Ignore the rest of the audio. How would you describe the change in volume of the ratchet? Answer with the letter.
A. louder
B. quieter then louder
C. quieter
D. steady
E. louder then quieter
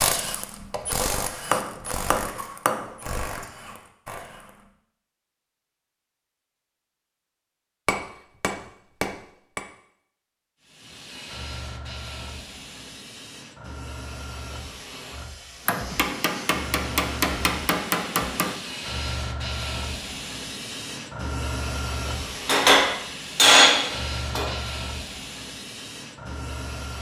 C.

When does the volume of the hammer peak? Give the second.
24 s.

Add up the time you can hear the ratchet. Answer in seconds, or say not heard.
5 s.